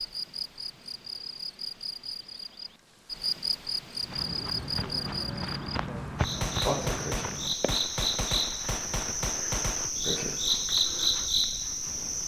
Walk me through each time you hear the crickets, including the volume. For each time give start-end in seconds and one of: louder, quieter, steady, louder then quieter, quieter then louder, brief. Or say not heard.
0.0-12.2 louder.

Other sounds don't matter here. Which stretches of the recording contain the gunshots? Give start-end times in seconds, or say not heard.
6.4-9.9.